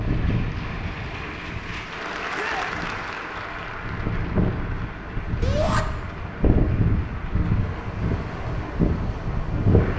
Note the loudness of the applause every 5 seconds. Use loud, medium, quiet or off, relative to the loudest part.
loud, medium.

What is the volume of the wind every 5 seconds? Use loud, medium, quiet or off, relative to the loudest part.
medium, loud.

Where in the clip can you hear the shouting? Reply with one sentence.
You can hear the shouting from 2.3 to 2.7 s and from 5.4 to 5.8 s.